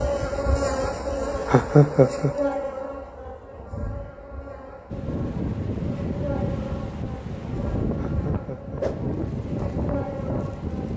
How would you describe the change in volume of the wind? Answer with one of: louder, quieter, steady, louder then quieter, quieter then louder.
steady.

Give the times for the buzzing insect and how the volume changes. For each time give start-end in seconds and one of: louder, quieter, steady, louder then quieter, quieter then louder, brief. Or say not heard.
0.0-10.9 quieter.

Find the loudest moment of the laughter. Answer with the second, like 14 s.
2 s.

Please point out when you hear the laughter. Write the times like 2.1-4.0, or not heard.
1.4-2.4, 8.0-8.8.